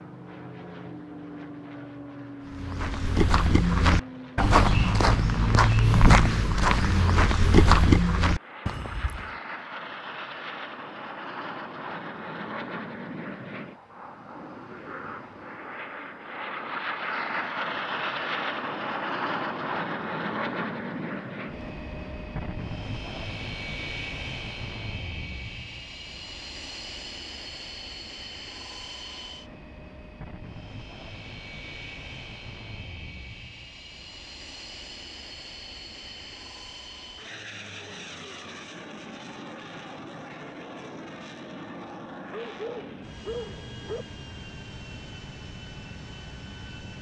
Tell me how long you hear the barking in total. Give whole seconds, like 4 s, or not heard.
2 s.